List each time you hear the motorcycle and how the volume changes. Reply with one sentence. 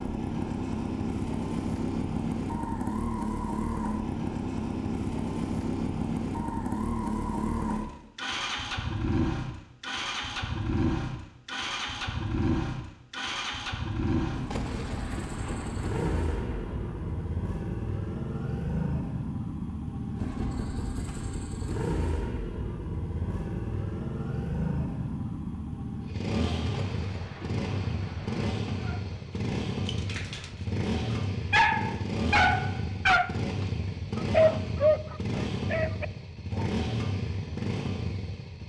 The motorcycle can be heard from 0.0 to 38.6 s, at a steady volume.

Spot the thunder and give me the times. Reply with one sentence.
You can hear the thunder from 14.5 to 17.4 s and from 26.7 to 29.4 s.